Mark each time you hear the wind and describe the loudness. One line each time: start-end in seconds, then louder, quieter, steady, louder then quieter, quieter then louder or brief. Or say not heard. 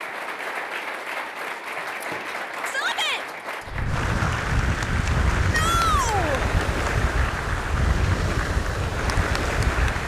3.6-10.0 steady.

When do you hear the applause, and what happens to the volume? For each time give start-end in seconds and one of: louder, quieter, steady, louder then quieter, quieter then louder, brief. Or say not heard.
0.0-10.0 steady.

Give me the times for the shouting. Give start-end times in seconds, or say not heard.
2.6-3.2, 5.5-6.5.